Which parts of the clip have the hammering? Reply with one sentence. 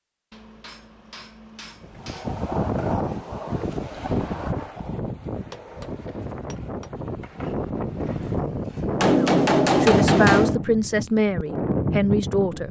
The hammering can be heard from 0.3 to 2.5 s, from 5.3 to 6.9 s and from 9.0 to 10.6 s.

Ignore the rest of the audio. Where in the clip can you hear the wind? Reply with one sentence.
The wind can be heard from 1.8 to 12.6 s.